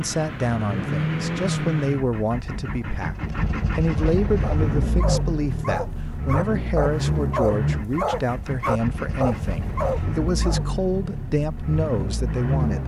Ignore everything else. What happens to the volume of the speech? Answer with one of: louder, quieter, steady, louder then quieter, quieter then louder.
steady.